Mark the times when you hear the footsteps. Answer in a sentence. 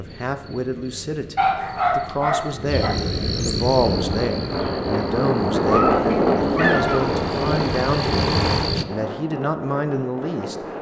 The footsteps can't be heard in this clip.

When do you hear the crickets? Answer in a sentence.
You can hear the crickets from 0.0 to 8.8 s.